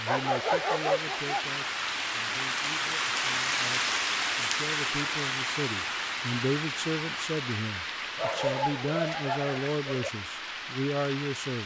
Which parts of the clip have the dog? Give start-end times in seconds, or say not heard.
0.1-1.4, 8.2-10.1.